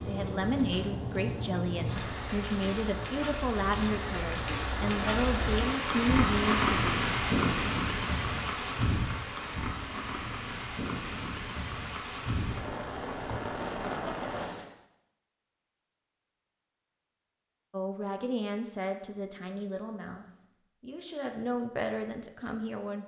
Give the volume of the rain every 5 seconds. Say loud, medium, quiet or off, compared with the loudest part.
medium, loud, medium, off, off.